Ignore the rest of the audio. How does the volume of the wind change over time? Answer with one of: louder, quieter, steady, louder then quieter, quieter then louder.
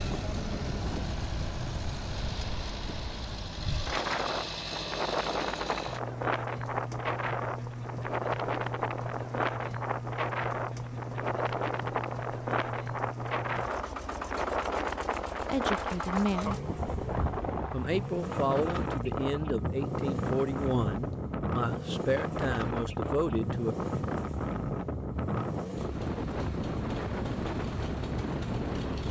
steady.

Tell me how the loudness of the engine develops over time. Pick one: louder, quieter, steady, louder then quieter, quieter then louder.
steady.